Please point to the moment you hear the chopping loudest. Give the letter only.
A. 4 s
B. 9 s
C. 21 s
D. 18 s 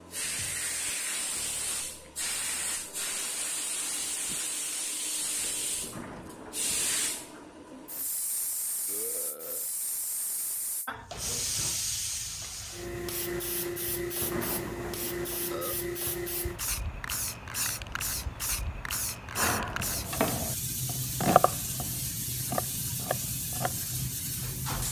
C.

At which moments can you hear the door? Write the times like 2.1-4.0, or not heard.
5.8-8.1, 14.2-15.6.